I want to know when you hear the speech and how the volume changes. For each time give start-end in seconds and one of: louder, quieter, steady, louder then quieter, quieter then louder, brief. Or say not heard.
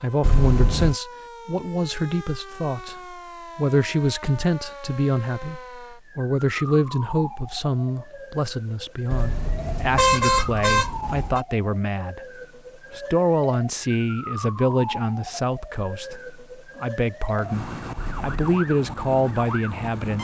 0.0-20.1 steady.